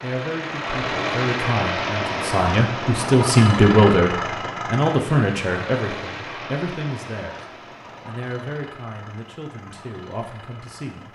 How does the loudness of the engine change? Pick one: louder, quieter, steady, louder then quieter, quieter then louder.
quieter.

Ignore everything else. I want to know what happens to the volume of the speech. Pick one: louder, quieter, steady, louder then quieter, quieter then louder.
louder then quieter.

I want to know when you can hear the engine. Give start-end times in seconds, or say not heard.
0.0-11.0.